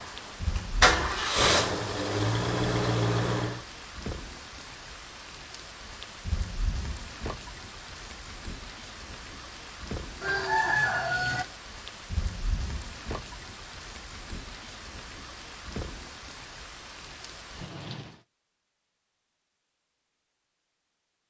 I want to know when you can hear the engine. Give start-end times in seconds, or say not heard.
0.0-3.6.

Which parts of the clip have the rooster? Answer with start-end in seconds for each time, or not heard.
10.2-11.4.